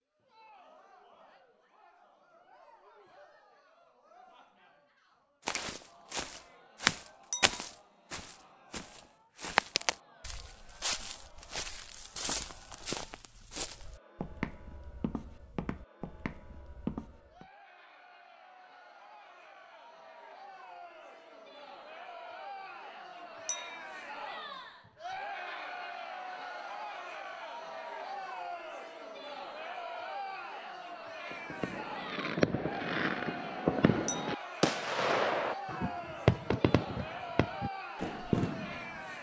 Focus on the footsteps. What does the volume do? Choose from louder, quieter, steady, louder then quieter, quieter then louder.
quieter.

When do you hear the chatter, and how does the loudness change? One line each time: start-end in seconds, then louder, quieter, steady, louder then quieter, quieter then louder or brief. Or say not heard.
0.1-39.1 louder.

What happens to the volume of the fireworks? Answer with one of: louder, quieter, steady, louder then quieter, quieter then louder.
steady.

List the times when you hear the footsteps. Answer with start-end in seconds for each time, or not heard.
5.5-17.4.